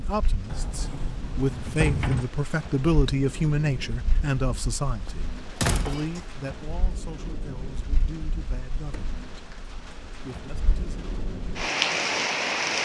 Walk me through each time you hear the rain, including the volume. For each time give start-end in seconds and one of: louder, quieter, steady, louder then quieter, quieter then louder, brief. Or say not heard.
0.0-12.8 louder.